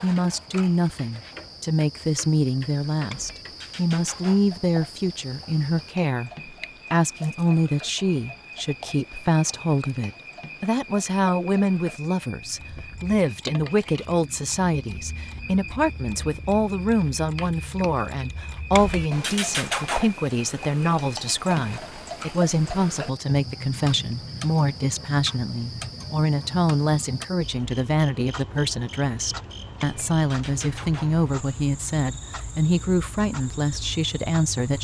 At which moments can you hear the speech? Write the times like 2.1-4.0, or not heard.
0.0-6.3, 6.9-34.7.